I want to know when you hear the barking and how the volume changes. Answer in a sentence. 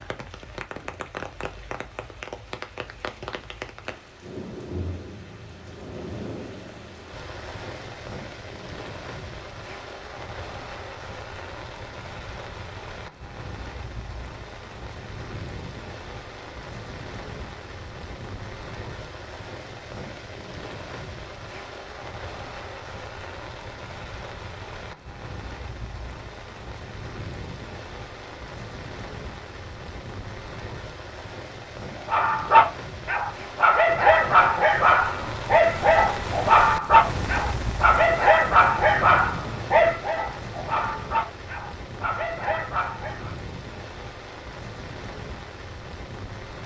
The barking can be heard from 31.9 to 43.4 s, getting quieter.